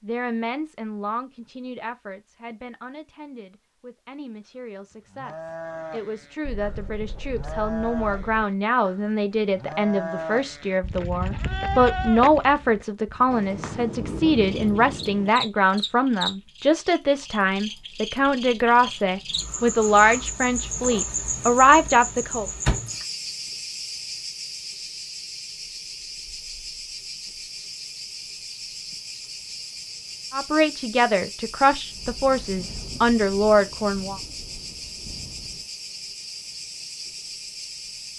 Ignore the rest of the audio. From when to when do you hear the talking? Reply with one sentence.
You can hear the talking from 0.0 to 22.4 s and from 30.3 to 34.2 s.